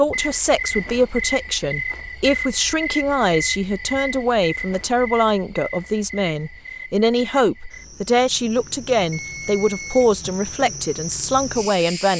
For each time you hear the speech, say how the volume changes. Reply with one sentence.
The speech can be heard from 0.0 to 12.1 s, at a steady volume.